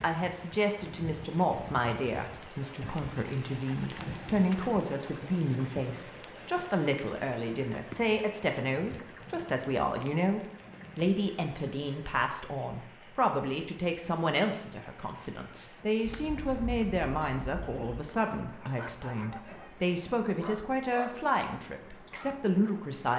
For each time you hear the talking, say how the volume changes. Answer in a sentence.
You can hear the talking from 0.0 to 23.1 s, at a steady volume.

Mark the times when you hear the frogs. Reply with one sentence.
The frogs can't be heard in this clip.